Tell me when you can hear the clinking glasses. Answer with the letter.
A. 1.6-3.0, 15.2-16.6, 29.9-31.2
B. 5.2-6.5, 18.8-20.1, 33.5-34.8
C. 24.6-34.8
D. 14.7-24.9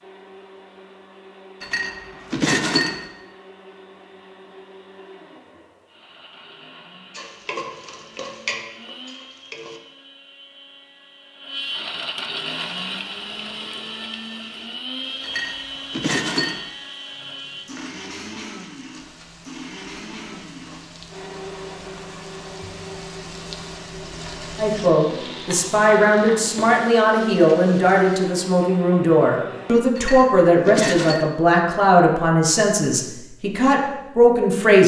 A.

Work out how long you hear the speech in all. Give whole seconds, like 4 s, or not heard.
10 s.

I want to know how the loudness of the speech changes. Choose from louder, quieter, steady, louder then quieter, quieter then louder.
steady.